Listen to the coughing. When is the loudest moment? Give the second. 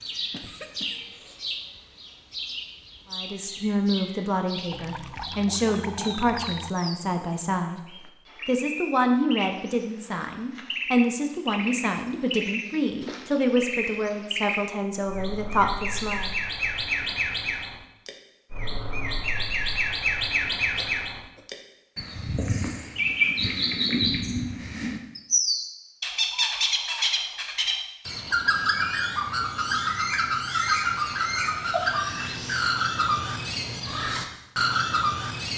32 s.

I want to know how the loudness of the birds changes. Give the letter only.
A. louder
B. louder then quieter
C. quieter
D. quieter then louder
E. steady
A.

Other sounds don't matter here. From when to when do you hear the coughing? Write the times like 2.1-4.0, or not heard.
0.3-1.4, 20.8-21.4, 31.7-32.4.